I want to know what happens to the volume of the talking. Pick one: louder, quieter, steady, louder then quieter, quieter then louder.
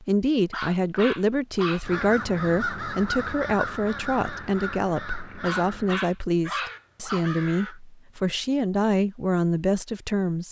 steady.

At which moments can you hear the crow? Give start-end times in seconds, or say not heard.
1.8-7.8.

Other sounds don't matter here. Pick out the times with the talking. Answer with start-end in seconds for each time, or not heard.
0.0-10.4.